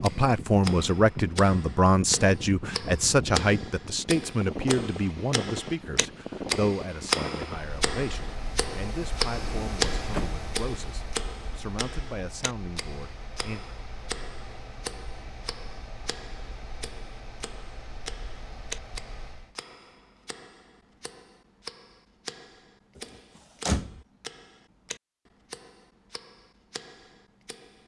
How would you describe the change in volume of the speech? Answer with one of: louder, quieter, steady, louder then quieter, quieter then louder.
quieter.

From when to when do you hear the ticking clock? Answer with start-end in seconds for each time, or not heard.
0.0-27.8.